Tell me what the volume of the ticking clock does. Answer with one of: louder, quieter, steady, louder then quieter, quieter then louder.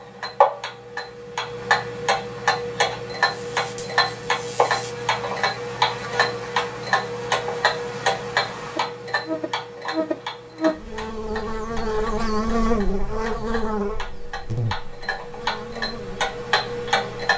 quieter then louder.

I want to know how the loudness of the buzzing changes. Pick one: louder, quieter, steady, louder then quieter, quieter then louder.
louder then quieter.